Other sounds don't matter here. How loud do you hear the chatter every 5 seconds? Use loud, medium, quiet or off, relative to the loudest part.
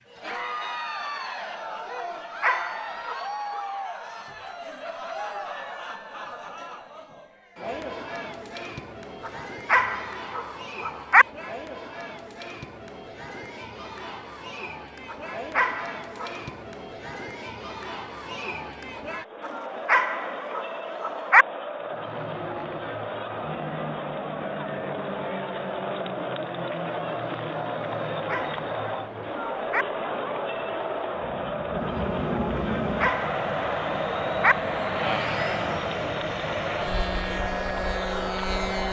loud, medium, medium, medium, loud, loud, loud, loud.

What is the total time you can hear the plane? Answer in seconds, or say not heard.
17 s.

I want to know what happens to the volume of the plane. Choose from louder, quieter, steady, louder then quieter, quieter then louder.
louder.